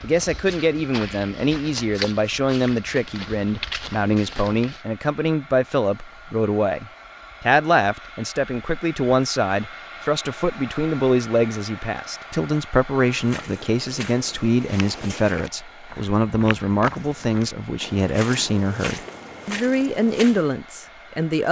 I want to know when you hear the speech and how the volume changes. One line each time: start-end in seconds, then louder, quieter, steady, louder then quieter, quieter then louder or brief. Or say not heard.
0.0-21.4 steady.